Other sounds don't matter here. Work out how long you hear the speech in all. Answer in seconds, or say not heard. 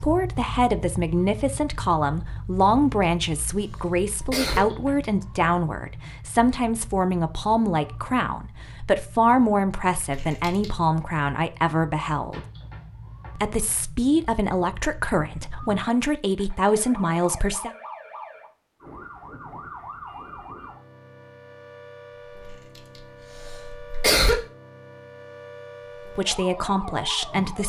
18 s.